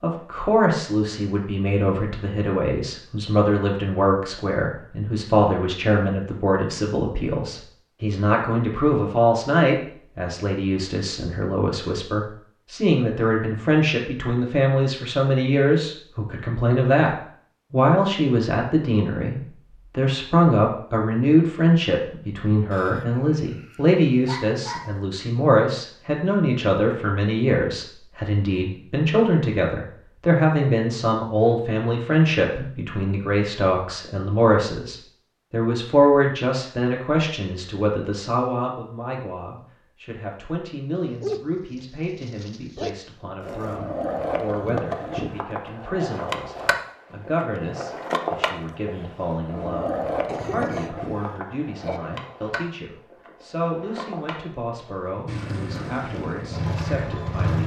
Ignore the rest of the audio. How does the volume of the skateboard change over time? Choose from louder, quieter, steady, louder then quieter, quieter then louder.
quieter.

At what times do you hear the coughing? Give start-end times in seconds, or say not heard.
50.2-52.0.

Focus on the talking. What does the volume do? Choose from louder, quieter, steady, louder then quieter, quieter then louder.
quieter.